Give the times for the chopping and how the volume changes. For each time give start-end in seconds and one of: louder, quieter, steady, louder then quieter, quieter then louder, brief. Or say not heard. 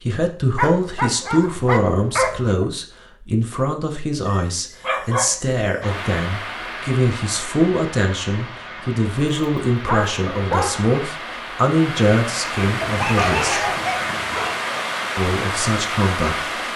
not heard.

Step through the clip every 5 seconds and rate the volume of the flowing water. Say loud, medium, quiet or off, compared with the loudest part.
off, medium, loud, loud.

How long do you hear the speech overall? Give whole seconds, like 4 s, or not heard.
15 s.